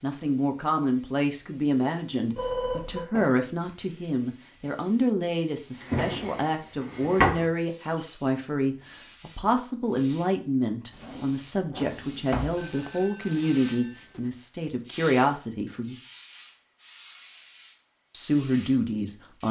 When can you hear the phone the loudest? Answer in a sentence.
The loudest moment of the phone is at 3 seconds.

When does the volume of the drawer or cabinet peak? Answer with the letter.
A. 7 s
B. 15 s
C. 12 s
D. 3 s
A.